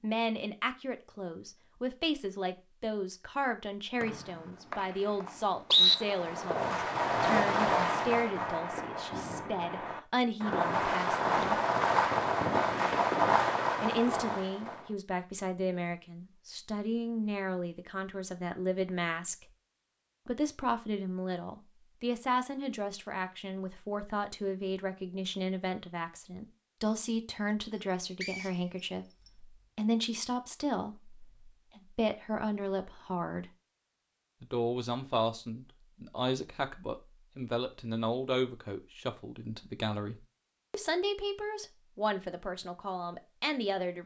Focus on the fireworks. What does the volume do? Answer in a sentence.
The volume of the fireworks goes down, then up.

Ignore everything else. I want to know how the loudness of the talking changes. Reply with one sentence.
The loudness of the talking stays about the same.